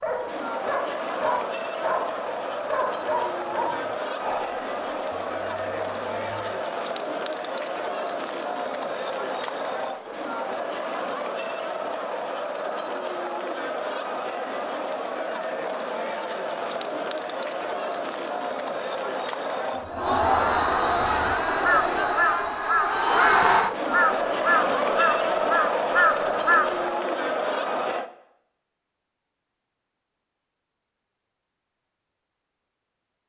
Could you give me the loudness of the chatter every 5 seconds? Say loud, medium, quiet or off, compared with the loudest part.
medium, medium, medium, medium, loud, loud, off.